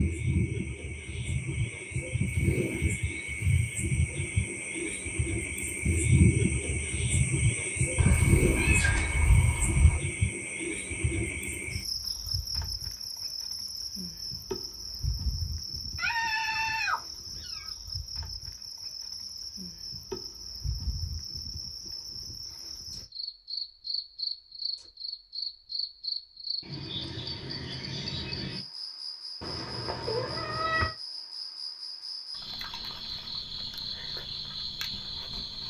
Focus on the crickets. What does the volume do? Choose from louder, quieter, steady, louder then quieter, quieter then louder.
quieter.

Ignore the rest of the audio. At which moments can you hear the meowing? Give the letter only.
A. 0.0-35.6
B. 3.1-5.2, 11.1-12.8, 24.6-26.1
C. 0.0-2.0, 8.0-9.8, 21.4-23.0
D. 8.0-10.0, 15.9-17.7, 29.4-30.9
D.